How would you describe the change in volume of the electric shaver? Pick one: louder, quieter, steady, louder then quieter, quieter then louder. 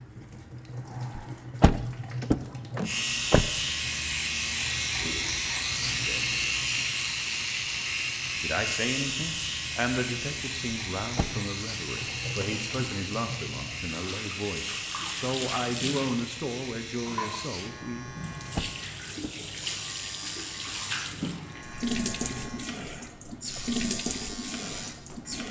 quieter.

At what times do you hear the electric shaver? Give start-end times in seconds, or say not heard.
2.8-25.4.